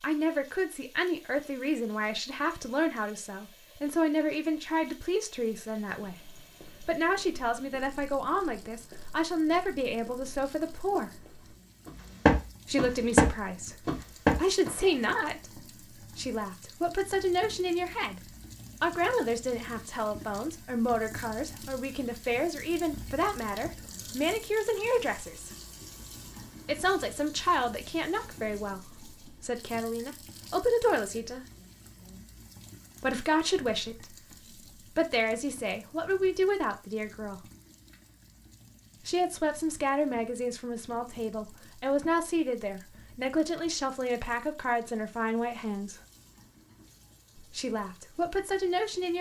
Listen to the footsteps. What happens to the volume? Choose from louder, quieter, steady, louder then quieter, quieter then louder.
louder.